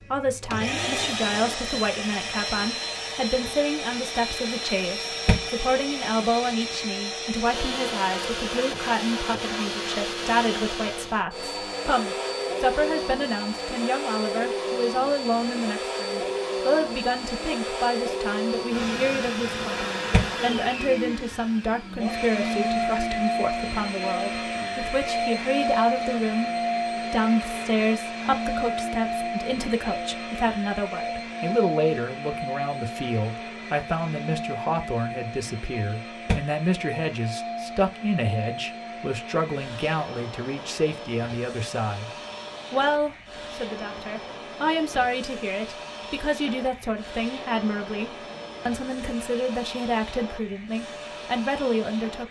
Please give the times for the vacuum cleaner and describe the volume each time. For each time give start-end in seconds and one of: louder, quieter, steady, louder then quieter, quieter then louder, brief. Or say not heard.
0.0-52.2 quieter.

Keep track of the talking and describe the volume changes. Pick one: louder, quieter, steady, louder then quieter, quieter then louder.
steady.